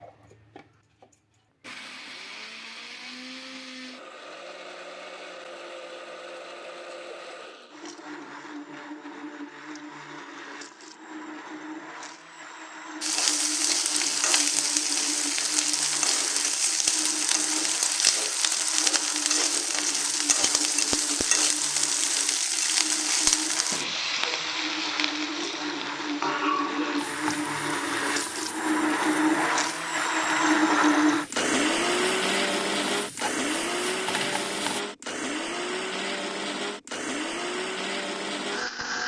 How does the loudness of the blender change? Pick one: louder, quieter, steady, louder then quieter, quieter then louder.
louder.